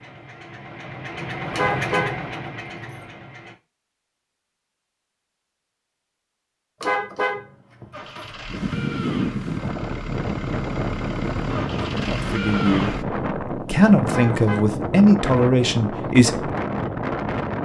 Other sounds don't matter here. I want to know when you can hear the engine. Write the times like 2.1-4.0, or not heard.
0.0-3.5, 7.9-13.1.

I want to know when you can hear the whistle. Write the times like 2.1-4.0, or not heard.
not heard.